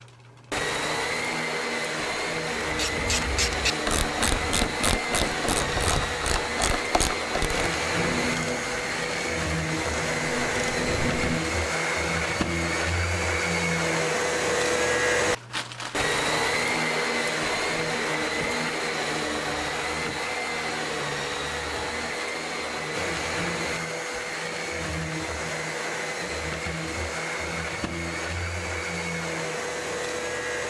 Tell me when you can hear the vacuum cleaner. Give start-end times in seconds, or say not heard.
0.0-30.6.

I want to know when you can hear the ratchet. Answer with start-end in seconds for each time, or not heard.
2.6-11.4.